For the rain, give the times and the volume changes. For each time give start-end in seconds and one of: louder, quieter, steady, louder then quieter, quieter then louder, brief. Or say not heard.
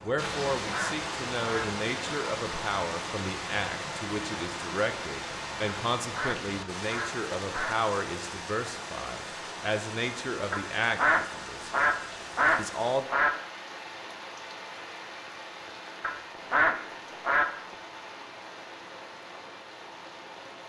0.0-20.6 quieter.